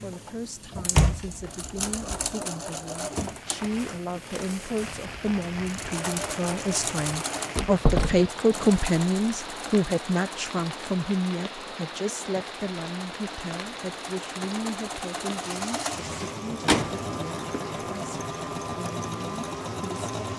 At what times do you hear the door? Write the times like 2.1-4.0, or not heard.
0.9-2.3, 7.5-8.2, 16.2-17.7.